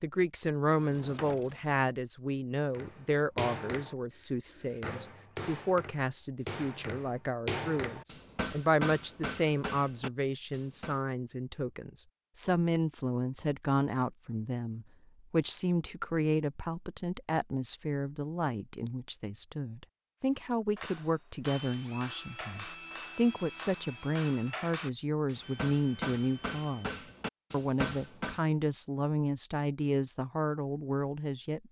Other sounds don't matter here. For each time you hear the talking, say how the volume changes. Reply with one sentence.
The talking can be heard from 0.0 to 31.6 s, at a steady volume.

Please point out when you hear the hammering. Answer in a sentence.
You can hear the hammering from 2.7 to 11.0 s and from 20.8 to 28.4 s.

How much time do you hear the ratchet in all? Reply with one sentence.
You can't hear the ratchet here.